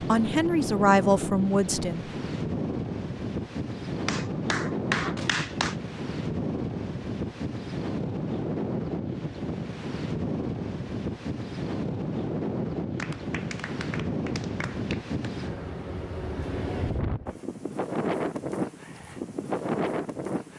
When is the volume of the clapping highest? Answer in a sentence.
The volume of the clapping peaks at 5 seconds.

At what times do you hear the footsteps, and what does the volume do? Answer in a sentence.
The footsteps can't be heard in this clip.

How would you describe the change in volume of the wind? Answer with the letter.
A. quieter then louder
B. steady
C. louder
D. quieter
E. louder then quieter
B.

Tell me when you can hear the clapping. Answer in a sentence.
The clapping can be heard from 4.0 to 5.8 s and from 12.9 to 15.1 s.